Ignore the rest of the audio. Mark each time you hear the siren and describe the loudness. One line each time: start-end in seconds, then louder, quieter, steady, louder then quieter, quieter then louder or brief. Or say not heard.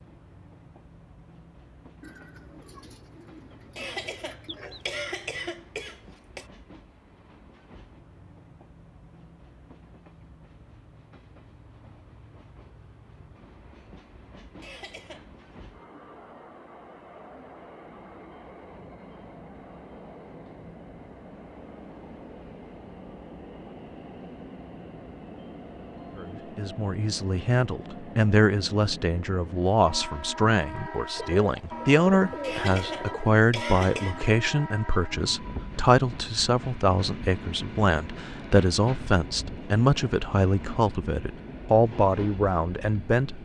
not heard.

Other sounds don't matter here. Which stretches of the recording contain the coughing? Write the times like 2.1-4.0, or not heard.
3.8-6.5, 14.6-15.6, 32.4-34.2.